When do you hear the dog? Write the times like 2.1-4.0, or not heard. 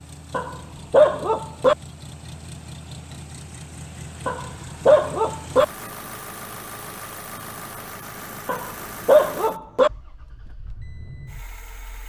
0.3-1.8, 4.2-5.7, 8.4-9.9.